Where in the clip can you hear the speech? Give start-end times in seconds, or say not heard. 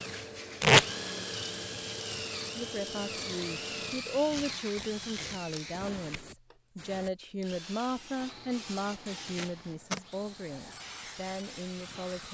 2.5-12.2.